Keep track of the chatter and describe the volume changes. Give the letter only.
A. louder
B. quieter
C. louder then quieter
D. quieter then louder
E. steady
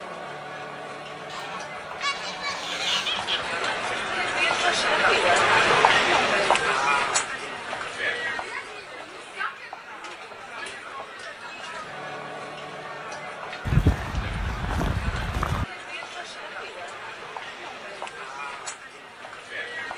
C.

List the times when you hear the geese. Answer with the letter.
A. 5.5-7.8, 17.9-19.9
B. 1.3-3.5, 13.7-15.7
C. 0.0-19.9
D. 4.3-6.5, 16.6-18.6
B.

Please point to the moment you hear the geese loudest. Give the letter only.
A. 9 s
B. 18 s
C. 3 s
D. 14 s
D.